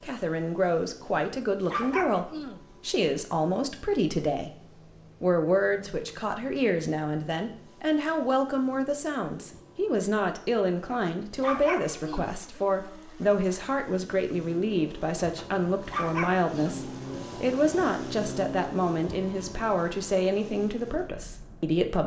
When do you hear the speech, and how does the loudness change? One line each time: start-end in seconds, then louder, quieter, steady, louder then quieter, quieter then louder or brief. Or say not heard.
0.0-4.5 steady
5.2-22.0 steady.